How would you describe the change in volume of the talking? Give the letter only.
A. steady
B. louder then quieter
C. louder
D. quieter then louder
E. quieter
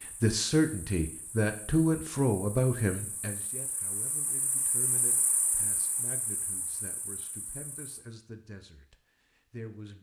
E.